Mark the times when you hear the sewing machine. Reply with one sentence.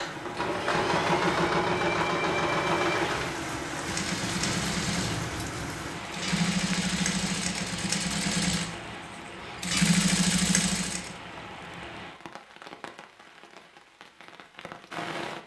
You can hear the sewing machine from 0.0 to 11.2 s.